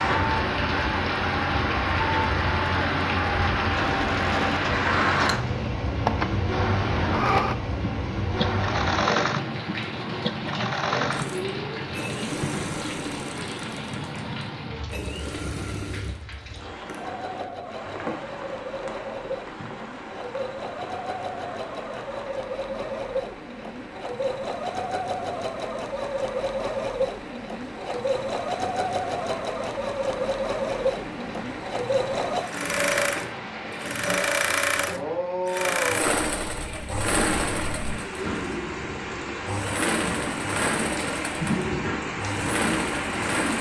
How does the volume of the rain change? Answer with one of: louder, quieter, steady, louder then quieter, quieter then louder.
quieter then louder.